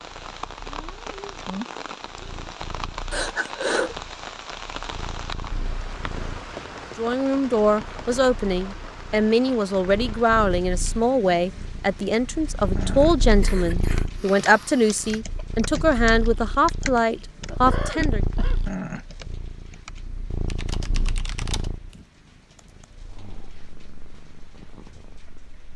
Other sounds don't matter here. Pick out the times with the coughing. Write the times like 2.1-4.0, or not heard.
3.1-4.0, 13.4-15.2, 17.5-18.6.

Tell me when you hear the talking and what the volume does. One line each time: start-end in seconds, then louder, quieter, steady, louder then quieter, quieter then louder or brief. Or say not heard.
7.0-18.2 steady.